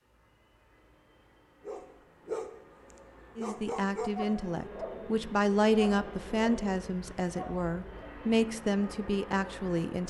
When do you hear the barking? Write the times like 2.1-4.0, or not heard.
1.6-8.1.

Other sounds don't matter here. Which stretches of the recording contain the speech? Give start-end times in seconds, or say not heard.
3.4-10.0.